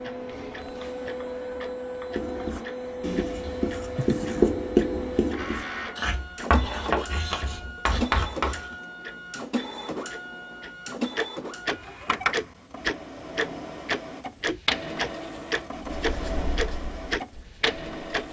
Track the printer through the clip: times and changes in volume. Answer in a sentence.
The printer can be heard from 0.0 to 18.2 s, at a steady volume.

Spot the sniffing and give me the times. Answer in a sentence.
The sniffing can be heard from 4.0 to 4.5 s.